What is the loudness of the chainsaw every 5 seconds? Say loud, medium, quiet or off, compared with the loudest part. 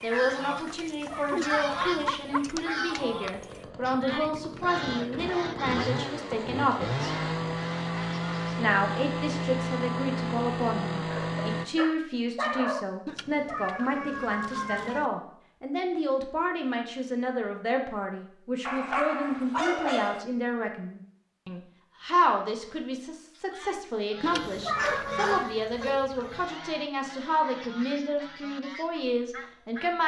quiet, loud, loud, off, off, off.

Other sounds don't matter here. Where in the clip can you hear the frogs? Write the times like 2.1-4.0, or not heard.
not heard.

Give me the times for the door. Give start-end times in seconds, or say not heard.
not heard.